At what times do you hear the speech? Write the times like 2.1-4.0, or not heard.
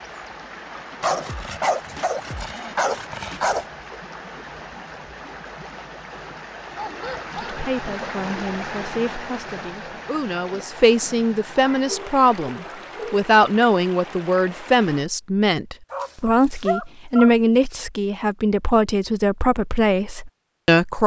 7.3-21.0.